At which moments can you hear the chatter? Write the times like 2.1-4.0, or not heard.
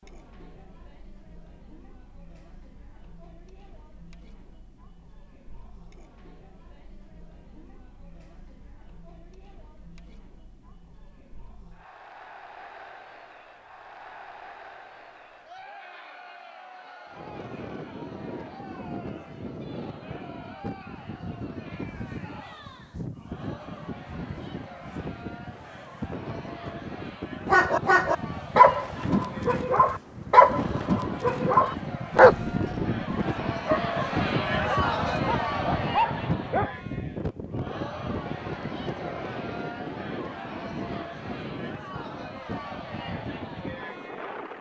0.0-44.5.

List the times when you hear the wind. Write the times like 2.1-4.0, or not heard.
17.1-44.5.